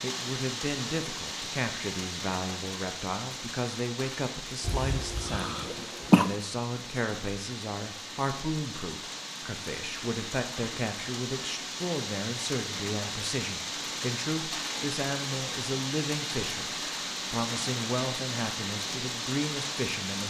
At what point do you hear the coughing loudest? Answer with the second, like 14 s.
6 s.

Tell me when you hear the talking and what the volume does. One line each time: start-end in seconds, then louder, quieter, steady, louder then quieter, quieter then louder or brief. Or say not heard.
0.0-20.2 steady.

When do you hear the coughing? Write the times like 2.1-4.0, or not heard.
4.6-6.3.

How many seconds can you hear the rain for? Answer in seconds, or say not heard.
20 s.